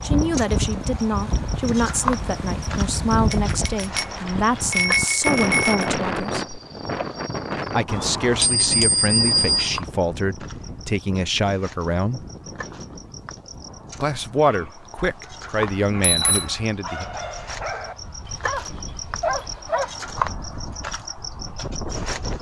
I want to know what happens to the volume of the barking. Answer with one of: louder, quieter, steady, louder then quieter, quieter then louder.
louder.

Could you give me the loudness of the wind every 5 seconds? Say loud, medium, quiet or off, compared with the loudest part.
loud, loud, quiet, quiet, medium.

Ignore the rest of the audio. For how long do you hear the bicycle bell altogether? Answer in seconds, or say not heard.
5 s.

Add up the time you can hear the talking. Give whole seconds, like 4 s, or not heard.
14 s.